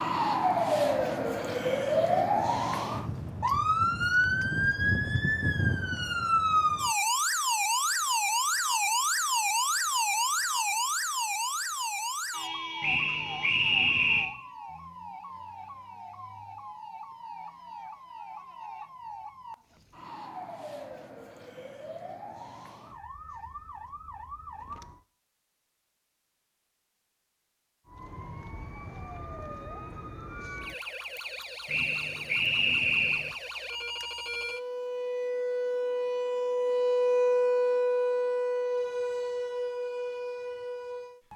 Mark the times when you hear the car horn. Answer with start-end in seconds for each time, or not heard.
not heard.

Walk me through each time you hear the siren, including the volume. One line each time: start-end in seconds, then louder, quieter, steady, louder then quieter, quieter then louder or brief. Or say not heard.
0.0-25.1 quieter
27.9-41.3 louder then quieter.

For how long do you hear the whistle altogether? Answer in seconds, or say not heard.
3 s.